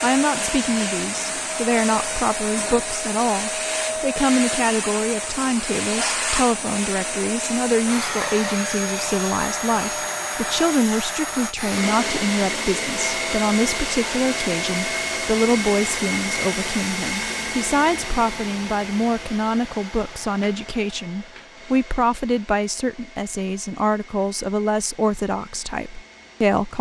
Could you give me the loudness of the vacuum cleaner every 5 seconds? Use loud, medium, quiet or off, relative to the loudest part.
loud, loud, loud, loud, quiet, quiet.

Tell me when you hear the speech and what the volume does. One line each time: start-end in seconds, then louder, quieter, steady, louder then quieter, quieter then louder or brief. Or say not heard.
0.0-26.7 steady.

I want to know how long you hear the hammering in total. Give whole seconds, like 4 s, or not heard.
not heard.